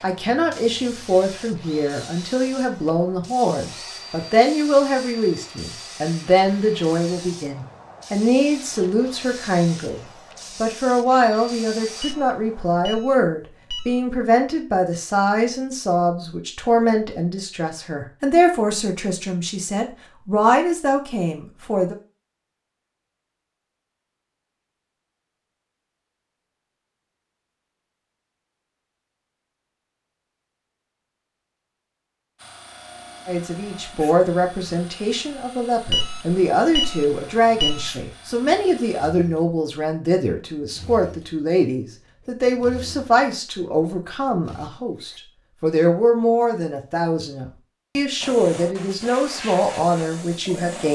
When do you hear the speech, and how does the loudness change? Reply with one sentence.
The speech can be heard from 0.0 to 21.9 s, at a steady volume; and from 33.2 to 50.9 s, at a steady volume.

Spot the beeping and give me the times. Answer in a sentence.
You can hear the beeping from 12.0 to 14.2 s and from 35.9 to 38.0 s.